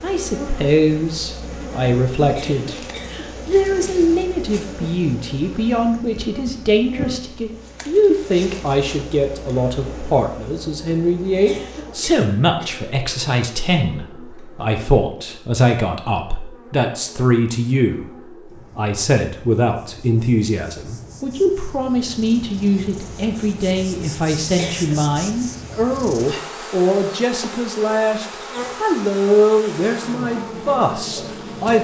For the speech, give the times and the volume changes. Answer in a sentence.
The speech can be heard from 0.0 to 18.1 s, at a steady volume; and from 18.8 to 31.8 s, at a steady volume.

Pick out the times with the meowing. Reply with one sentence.
You can't hear the meowing here.